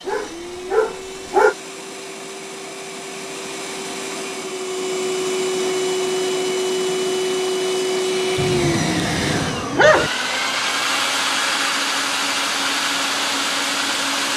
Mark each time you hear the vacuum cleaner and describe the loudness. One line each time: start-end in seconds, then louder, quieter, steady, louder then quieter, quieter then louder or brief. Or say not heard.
0.0-14.3 louder.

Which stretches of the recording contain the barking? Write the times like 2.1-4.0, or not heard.
0.1-1.6, 8.3-10.1.